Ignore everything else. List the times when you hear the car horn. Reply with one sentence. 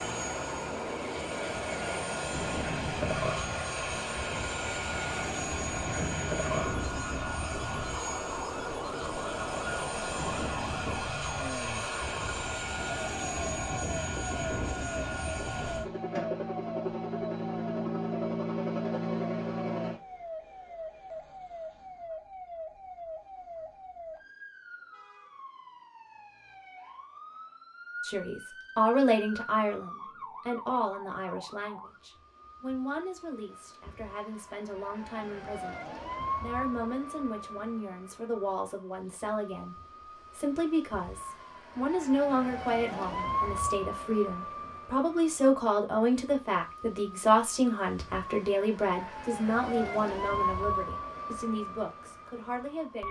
You can't hear the car horn here.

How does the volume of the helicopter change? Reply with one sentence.
The loudness of the helicopter stays about the same.